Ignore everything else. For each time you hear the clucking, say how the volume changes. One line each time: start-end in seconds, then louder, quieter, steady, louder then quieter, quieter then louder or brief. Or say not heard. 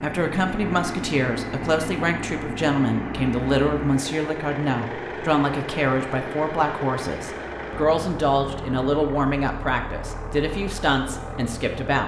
not heard.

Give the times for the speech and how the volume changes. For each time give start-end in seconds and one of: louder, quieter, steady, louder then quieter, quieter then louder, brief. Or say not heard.
0.0-12.0 steady.